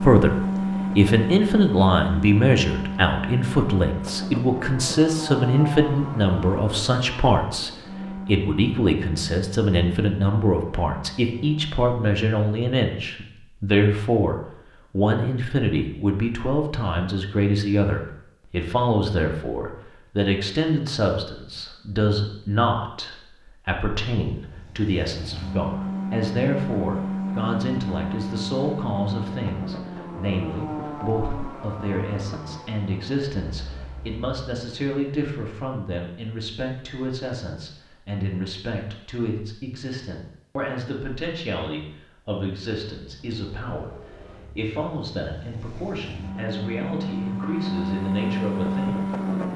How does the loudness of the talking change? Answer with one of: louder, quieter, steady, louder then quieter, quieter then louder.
quieter.